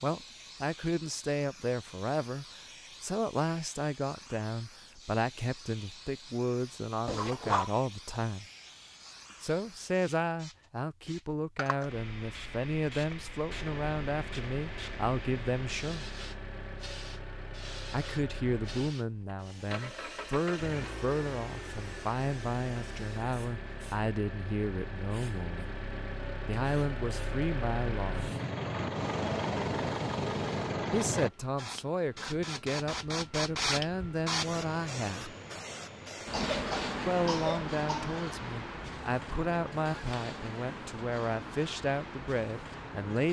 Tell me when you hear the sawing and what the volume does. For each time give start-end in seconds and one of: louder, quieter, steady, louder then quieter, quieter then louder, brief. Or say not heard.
not heard.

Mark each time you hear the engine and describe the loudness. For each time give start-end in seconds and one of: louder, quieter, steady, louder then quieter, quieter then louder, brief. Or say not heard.
13.4-31.3 louder.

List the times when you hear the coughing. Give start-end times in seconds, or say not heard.
7.0-7.7, 36.3-38.2.